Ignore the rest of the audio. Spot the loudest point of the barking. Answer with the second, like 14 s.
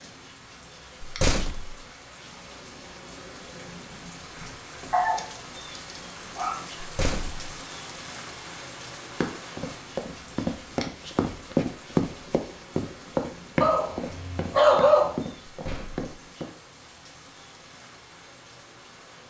15 s.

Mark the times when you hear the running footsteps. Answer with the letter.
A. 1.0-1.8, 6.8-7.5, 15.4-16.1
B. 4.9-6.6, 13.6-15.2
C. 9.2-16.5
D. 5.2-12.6
C.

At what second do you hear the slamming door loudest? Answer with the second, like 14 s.
1 s.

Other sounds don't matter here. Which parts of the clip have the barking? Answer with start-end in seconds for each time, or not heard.
4.9-6.6, 13.6-15.2.